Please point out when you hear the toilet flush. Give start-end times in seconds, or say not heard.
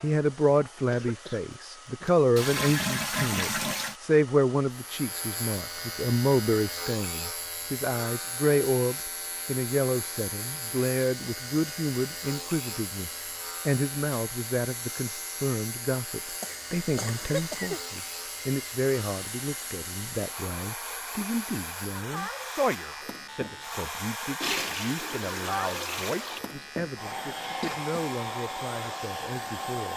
2.4-4.0, 24.4-26.4.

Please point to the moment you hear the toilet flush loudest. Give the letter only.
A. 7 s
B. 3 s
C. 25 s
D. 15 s
B.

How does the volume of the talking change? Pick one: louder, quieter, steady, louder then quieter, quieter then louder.
quieter.